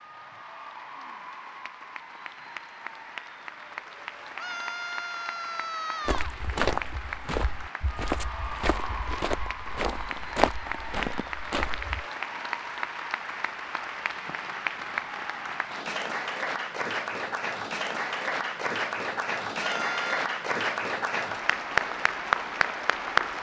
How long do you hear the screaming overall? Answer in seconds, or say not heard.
3 s.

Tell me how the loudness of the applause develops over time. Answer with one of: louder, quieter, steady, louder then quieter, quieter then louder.
louder.